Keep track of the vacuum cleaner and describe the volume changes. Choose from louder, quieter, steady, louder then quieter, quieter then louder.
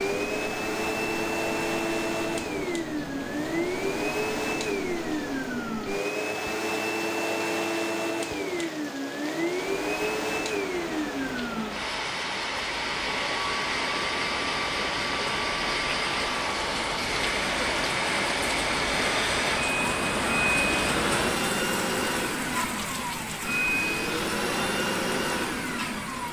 steady.